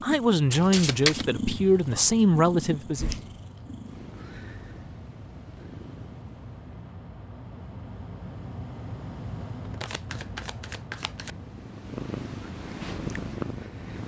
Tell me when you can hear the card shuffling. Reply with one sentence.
You can hear the card shuffling from 0.5 to 1.2 s and from 9.8 to 11.3 s.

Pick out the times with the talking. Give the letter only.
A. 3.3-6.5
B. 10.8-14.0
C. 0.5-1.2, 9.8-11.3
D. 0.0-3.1
D.